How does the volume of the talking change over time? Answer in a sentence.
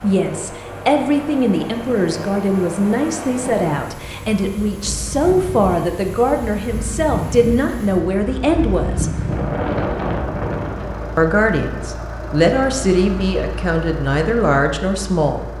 The loudness of the talking stays about the same.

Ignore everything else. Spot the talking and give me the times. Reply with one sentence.
The talking can be heard from 0.0 to 9.1 s and from 11.2 to 15.5 s.